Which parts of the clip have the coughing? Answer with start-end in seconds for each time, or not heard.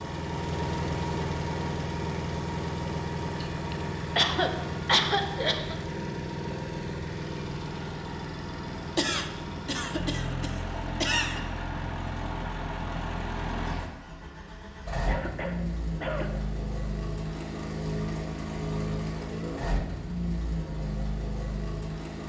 3.4-5.8, 8.9-11.4, 15.1-16.3.